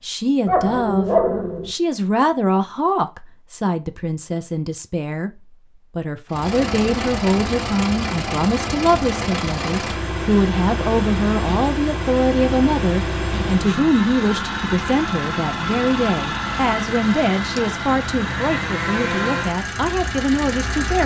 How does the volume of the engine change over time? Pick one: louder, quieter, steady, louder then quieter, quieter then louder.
steady.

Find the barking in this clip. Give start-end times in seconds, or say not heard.
0.5-1.7.